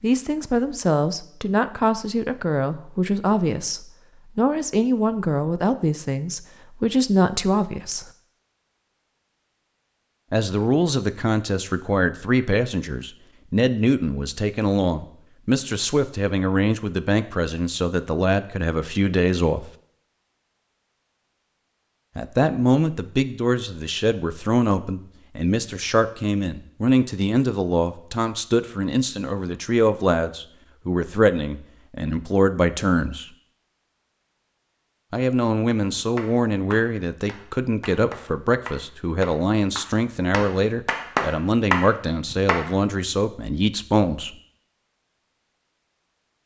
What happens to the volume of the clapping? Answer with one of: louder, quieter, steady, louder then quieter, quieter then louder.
louder.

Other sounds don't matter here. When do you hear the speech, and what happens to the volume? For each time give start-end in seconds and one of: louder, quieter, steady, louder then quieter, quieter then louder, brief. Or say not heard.
0.0-8.1 steady
10.3-19.7 steady
22.1-33.3 steady
35.1-44.4 steady.